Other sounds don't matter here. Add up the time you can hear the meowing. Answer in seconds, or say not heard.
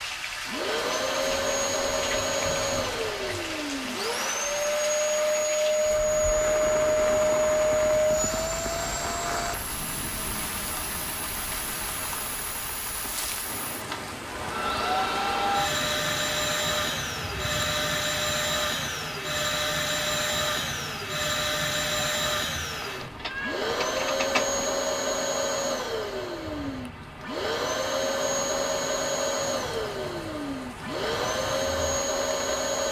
2 s.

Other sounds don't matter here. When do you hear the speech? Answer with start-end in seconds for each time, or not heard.
not heard.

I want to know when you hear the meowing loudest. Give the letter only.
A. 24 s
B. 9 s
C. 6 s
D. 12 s
A.